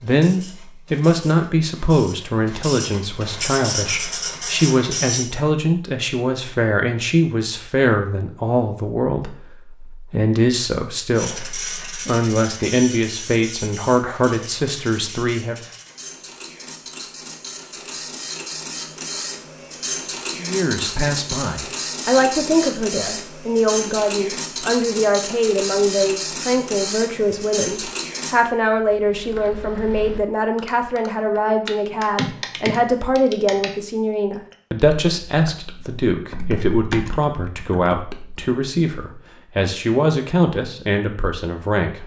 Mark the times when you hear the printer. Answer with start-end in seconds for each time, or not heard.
0.0-5.2, 11.2-28.4.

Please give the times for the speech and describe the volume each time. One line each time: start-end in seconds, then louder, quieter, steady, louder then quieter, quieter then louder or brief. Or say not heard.
0.0-15.6 steady
20.4-42.0 steady.